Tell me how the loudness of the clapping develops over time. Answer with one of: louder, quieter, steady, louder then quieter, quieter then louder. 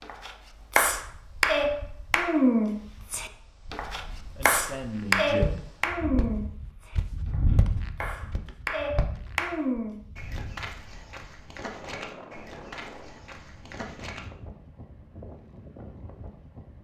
quieter.